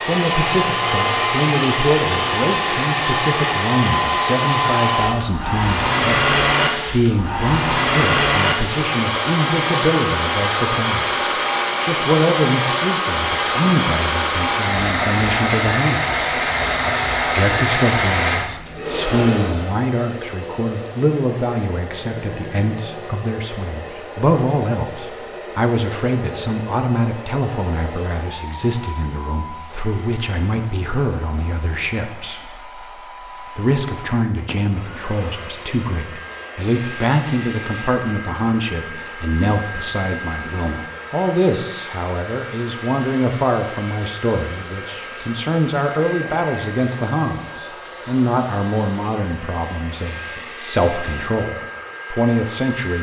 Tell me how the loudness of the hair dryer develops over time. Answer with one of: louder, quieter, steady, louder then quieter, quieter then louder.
quieter.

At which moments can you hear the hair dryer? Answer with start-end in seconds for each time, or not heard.
0.0-52.9.